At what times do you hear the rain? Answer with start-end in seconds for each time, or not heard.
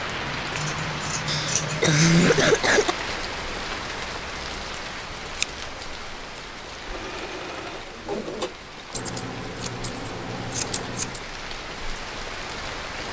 0.0-13.0.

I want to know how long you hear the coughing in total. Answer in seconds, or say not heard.
2 s.